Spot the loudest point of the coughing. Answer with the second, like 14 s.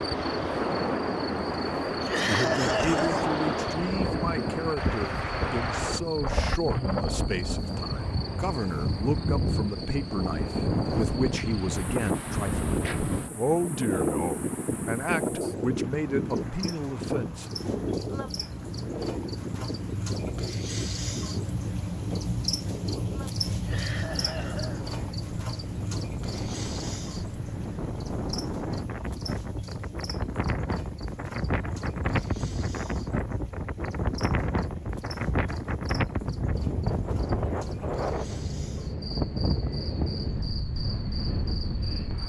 2 s.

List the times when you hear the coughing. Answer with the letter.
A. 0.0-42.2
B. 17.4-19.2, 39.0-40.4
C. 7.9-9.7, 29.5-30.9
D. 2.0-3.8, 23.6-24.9
D.